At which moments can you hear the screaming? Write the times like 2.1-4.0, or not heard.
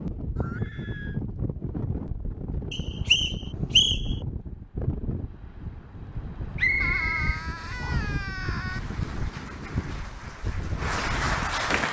0.3-1.2, 6.8-8.8.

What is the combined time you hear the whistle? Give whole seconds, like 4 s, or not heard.
3 s.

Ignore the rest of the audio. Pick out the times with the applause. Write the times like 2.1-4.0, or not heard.
8.6-11.8.